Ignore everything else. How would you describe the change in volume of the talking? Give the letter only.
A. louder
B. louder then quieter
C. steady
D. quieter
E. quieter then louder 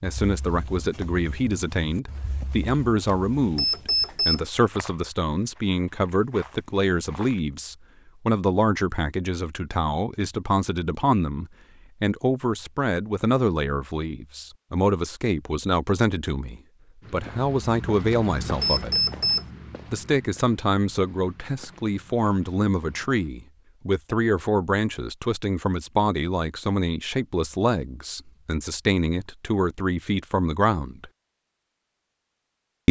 C.